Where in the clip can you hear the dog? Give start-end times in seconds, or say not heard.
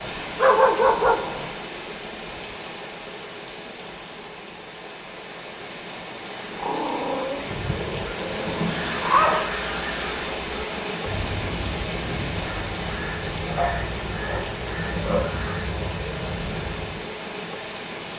0.3-1.5, 6.5-9.5, 13.4-15.4.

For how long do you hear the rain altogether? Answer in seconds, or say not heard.
18 s.